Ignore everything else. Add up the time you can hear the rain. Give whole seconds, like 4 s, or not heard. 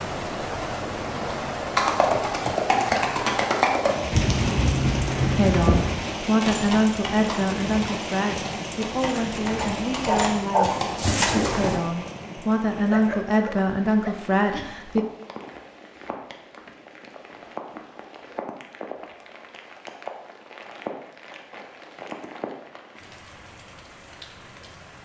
25 s.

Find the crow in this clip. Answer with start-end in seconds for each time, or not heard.
not heard.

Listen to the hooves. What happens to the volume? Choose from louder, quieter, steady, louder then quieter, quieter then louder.
quieter then louder.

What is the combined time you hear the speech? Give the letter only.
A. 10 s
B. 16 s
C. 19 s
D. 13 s
A.